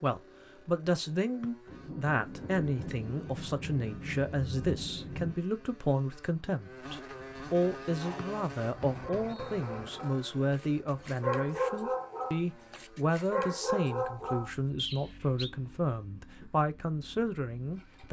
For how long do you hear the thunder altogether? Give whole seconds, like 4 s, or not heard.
4 s.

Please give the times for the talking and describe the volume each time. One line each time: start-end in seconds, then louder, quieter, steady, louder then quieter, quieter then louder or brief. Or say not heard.
0.0-18.0 steady.